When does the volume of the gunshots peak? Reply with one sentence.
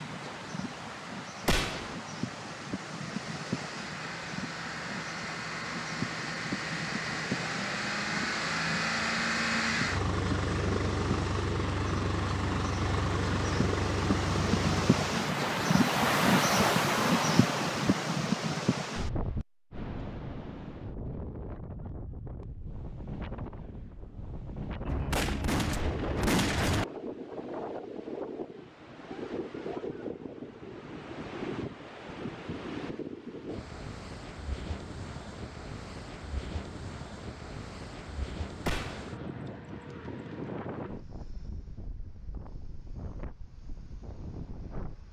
The volume of the gunshots peaks at 26 seconds.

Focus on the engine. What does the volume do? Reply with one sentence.
The loudness of the engine goes up.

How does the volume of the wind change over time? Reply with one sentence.
The volume of the wind goes up, then down.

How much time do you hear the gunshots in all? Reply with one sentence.
You can hear the gunshots for 3 seconds altogether.